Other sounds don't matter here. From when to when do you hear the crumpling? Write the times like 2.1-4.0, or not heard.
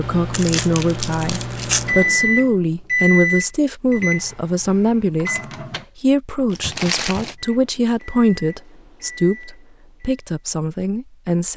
0.3-1.9, 6.5-7.3.